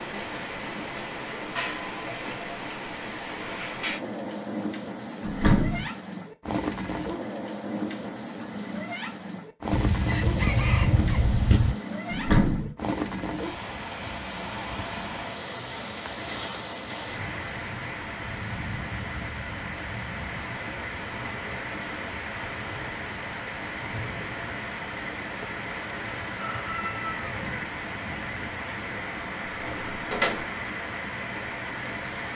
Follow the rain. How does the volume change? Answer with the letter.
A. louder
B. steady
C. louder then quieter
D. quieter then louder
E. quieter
B.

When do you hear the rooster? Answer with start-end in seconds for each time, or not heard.
9.7-11.8, 26.3-28.3.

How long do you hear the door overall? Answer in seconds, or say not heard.
2 s.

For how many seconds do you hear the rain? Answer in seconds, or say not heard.
32 s.